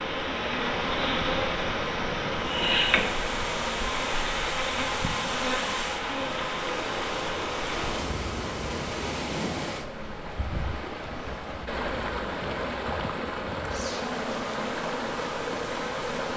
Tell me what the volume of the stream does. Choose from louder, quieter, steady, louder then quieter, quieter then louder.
steady.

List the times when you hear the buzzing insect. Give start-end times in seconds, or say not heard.
0.0-16.3.